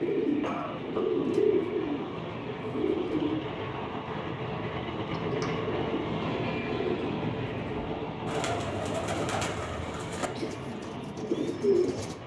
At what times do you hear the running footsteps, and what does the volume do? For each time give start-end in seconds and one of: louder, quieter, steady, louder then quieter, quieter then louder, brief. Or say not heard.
not heard.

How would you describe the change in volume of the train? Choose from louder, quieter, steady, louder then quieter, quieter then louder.
louder then quieter.